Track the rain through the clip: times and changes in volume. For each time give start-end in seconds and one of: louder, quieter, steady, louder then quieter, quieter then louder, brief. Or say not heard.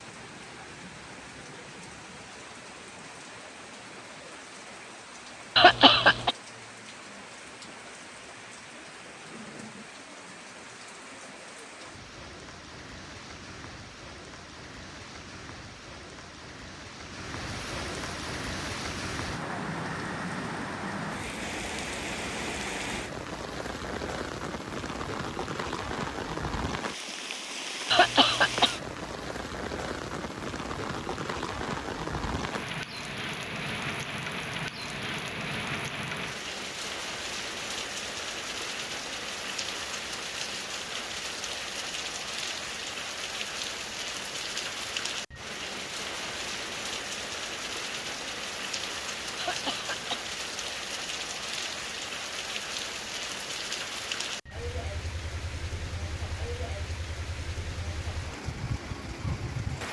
0.0-59.8 louder.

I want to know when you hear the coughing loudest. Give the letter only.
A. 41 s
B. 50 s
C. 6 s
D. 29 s
C.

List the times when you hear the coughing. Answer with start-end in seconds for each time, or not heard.
5.5-6.3, 27.9-28.8, 49.4-50.2.